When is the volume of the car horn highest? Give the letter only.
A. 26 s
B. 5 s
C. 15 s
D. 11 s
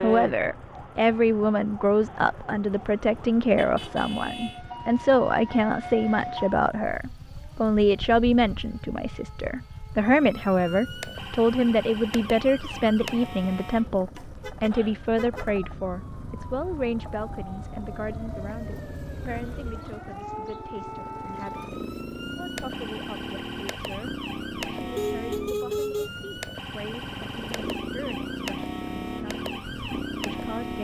A.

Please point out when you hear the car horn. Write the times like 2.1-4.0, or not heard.
3.5-4.6, 14.4-15.4, 24.9-26.1.